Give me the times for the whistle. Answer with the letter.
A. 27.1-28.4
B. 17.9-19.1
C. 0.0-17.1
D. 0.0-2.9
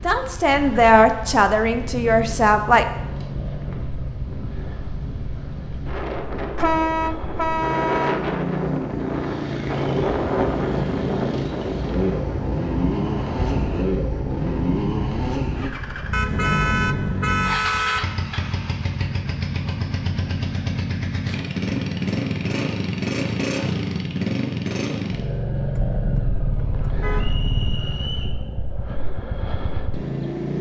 A.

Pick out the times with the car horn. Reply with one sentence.
You can hear the car horn from 6.5 to 8.2 s, from 16.1 to 18.1 s and from 25.7 to 27.6 s.